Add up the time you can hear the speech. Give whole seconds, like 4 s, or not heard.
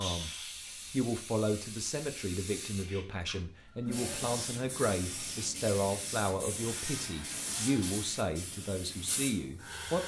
10 s.